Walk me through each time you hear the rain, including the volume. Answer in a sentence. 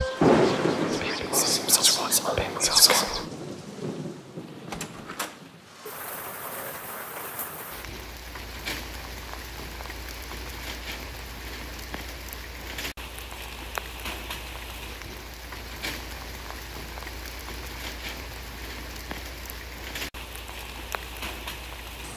The rain can be heard from 0.0 to 22.1 s, getting quieter.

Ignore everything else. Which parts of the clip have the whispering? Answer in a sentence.
The whispering can be heard from 0.0 to 3.2 s.